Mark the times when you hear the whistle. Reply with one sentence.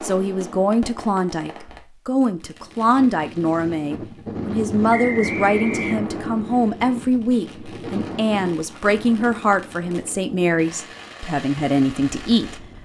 You can hear the whistle from 4.9 to 6.1 s.